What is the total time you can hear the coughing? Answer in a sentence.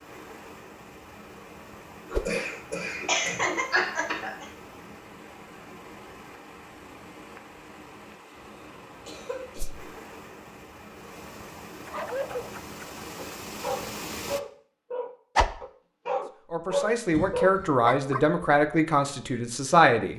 The coughing can be heard for 4 seconds in total.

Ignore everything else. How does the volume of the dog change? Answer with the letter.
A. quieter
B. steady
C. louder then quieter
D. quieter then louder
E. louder
E.